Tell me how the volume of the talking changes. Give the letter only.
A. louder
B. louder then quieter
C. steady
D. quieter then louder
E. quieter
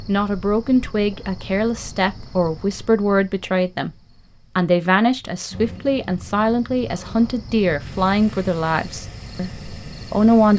C.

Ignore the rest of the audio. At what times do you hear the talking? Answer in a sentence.
You can hear the talking from 0.1 to 3.9 s and from 4.5 to 10.5 s.